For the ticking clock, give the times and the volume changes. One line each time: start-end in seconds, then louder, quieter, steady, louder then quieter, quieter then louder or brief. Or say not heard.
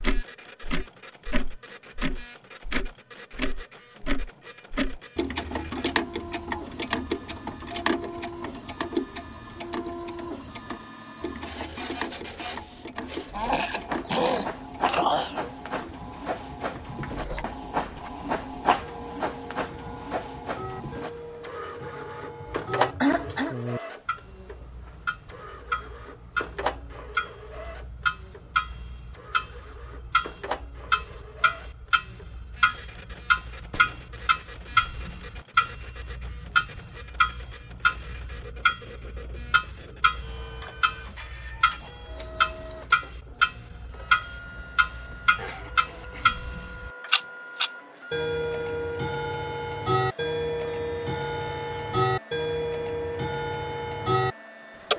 0.0-54.9 quieter then louder.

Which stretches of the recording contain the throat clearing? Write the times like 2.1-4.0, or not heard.
13.3-15.5, 22.4-23.6, 45.4-46.5.